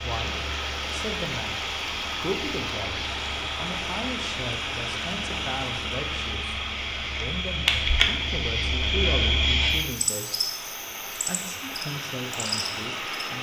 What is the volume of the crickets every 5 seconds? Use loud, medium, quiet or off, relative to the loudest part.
medium, loud, medium.